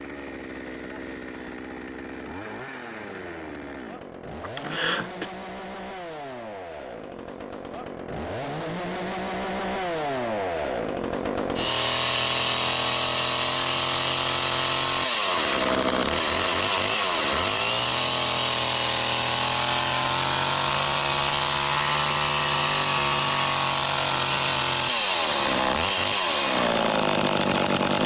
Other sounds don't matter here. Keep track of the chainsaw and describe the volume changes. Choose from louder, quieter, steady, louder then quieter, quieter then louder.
louder.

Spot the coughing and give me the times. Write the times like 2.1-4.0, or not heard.
4.4-5.3.